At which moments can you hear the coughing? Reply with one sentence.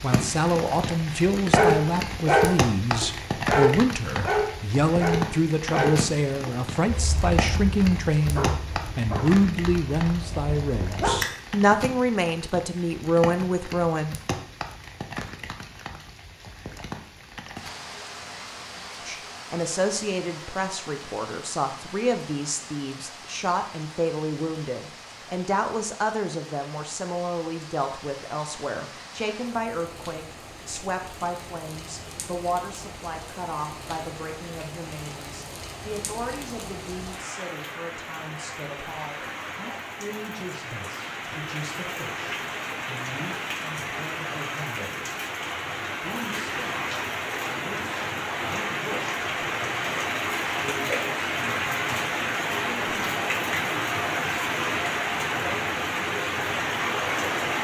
You can't hear the coughing here.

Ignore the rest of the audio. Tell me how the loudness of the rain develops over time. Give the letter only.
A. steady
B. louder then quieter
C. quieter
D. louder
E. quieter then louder
E.